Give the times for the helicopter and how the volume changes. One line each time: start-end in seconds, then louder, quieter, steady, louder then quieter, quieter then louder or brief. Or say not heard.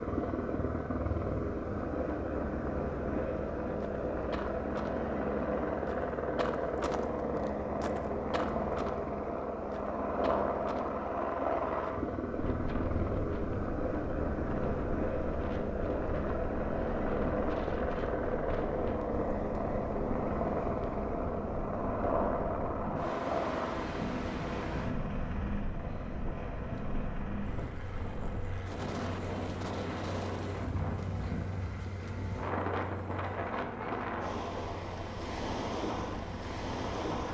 0.0-37.2 quieter.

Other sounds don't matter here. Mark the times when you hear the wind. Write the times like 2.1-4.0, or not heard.
12.2-37.2.